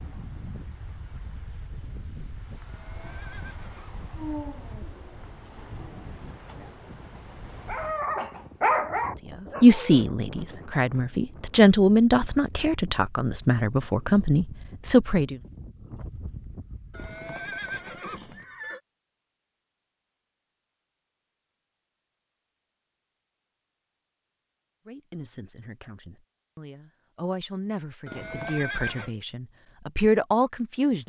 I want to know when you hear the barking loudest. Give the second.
9 s.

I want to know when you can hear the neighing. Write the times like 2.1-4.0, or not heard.
2.6-4.0, 16.9-18.8, 28.1-29.1.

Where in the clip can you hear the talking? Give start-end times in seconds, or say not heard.
9.3-15.4, 24.9-31.0.